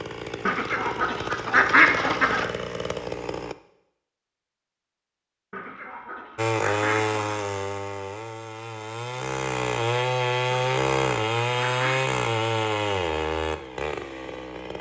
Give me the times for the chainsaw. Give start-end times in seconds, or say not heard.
0.0-3.5, 6.3-14.7.